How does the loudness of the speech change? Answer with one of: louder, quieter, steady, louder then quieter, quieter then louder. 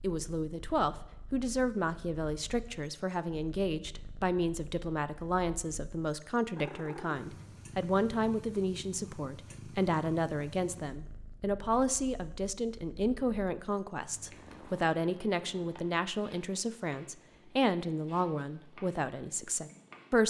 steady.